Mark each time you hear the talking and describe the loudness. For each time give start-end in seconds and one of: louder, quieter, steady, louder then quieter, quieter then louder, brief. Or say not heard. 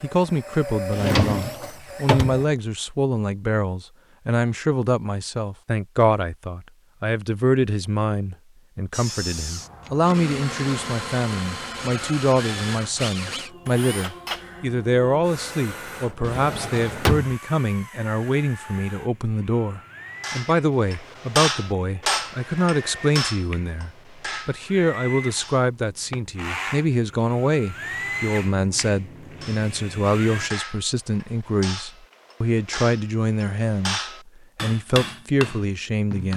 0.0-36.3 steady.